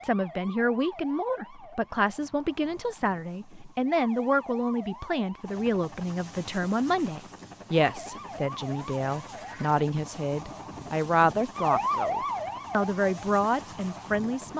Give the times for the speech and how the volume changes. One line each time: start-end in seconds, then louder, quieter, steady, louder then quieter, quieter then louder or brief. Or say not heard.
0.0-14.5 steady.